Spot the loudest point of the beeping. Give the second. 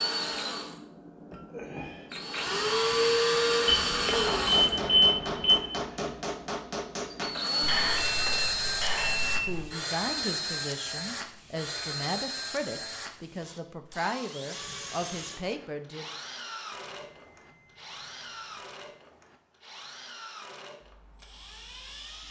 5 s.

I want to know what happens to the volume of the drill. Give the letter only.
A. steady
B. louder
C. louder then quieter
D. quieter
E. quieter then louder
D.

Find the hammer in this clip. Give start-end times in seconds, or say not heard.
4.1-9.3.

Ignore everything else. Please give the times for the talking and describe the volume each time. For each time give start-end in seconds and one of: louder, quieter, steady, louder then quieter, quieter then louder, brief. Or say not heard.
9.4-16.1 steady.